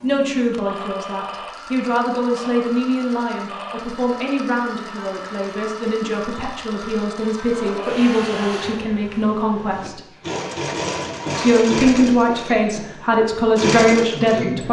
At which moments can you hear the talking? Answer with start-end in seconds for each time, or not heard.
0.0-10.0, 11.3-14.6.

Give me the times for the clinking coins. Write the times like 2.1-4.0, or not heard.
not heard.